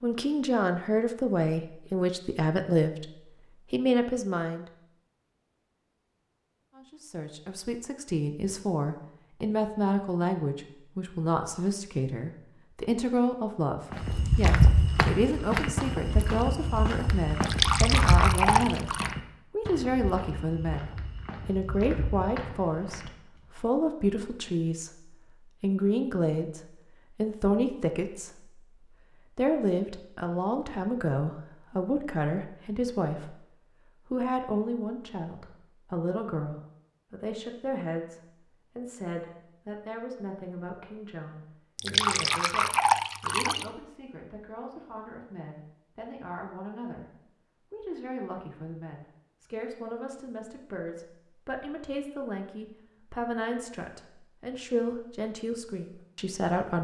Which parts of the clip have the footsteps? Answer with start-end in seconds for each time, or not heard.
13.9-23.5.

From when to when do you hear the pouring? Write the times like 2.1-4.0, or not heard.
17.4-19.1, 41.8-43.7.